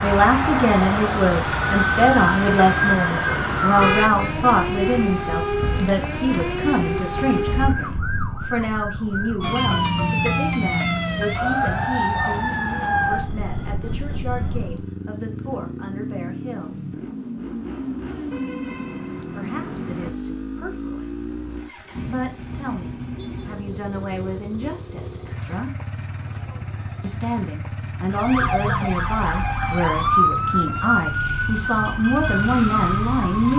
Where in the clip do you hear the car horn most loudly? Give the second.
4 s.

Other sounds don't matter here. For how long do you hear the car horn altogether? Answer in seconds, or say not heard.
3 s.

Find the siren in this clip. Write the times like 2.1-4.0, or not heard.
0.0-14.8, 28.1-33.5.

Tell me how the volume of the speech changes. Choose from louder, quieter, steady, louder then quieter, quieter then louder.
quieter then louder.